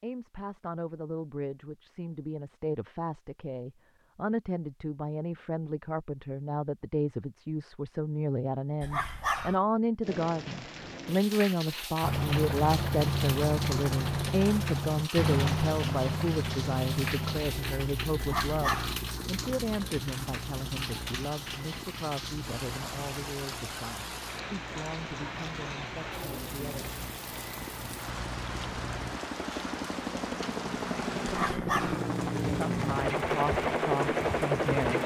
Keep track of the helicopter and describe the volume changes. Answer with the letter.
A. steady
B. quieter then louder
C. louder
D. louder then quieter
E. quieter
B.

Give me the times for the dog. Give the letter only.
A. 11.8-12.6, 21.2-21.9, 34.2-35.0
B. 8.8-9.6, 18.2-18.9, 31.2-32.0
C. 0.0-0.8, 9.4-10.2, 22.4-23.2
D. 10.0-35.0
B.